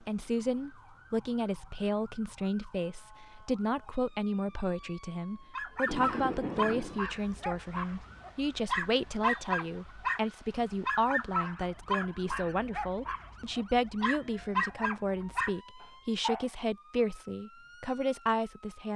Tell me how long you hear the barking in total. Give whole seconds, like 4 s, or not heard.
11 s.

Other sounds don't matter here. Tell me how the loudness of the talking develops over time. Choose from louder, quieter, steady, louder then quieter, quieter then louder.
steady.